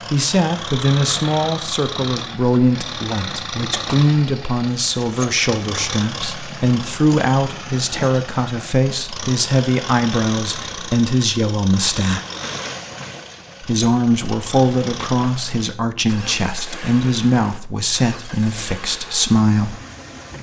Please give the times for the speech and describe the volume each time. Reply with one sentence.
You can hear the speech from 0.1 to 12.2 s, at a steady volume; and from 13.6 to 19.8 s, at a steady volume.